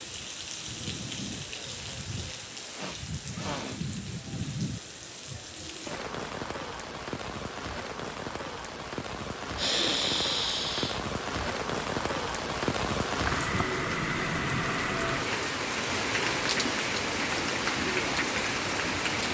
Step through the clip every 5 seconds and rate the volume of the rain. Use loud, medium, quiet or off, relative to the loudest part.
medium, medium, loud, loud.